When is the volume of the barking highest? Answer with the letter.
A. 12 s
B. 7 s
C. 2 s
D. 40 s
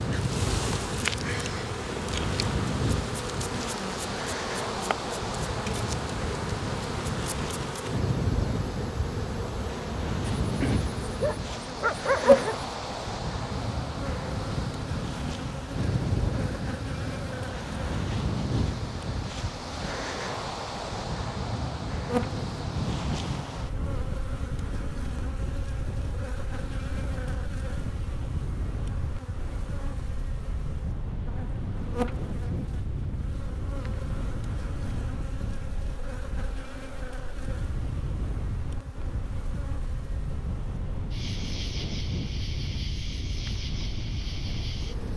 A.